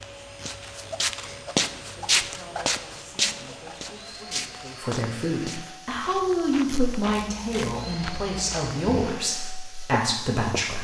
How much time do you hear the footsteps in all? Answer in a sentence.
The footsteps can be heard for 10 seconds in total.